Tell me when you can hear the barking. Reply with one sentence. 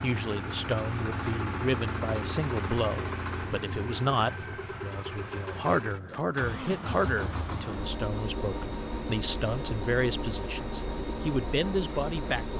You can't hear the barking here.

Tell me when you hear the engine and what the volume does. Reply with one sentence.
The engine can be heard from 0.0 to 12.5 s, at a steady volume.